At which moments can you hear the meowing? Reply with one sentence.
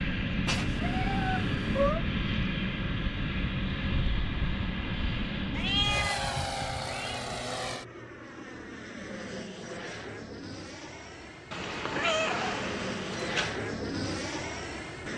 You can hear the meowing from 0.5 to 2.0 s, from 5.5 to 7.2 s and from 11.5 to 13.5 s.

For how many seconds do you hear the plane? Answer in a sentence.
The plane can be heard for 15 seconds in total.